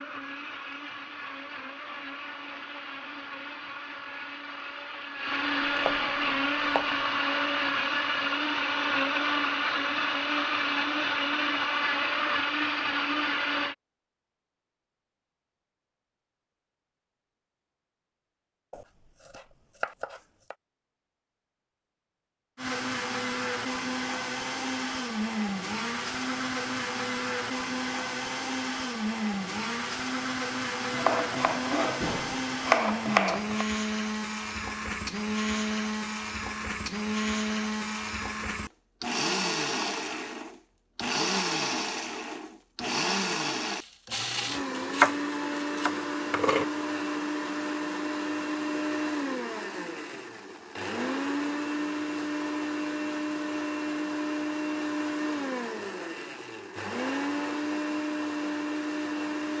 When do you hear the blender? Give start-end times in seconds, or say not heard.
0.0-13.8, 22.6-59.5.